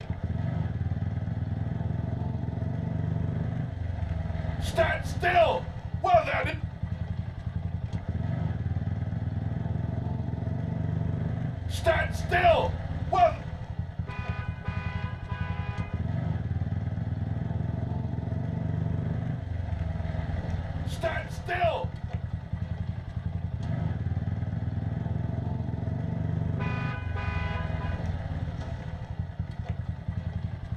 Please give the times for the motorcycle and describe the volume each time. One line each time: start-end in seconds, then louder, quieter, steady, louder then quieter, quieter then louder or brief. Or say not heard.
0.0-30.7 steady.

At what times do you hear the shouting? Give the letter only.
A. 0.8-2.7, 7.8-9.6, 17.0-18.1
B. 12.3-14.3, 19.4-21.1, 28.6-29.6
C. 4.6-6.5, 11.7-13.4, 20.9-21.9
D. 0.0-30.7
C.